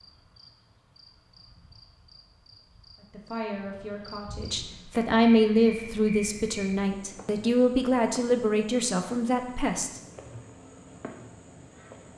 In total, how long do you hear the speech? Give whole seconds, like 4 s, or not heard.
7 s.